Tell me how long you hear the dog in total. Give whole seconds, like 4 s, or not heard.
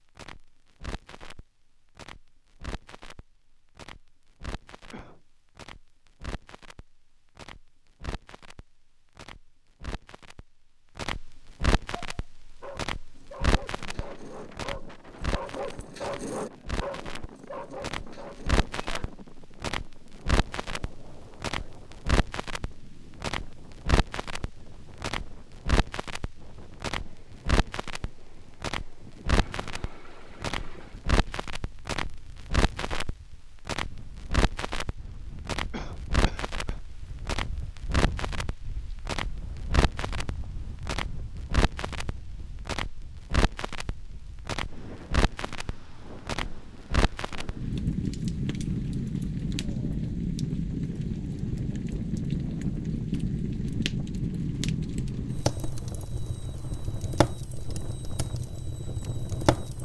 7 s.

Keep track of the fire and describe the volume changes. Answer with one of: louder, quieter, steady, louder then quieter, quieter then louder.
louder.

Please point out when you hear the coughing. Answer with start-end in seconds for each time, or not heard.
4.7-5.2, 35.7-36.8.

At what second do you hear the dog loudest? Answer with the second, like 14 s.
16 s.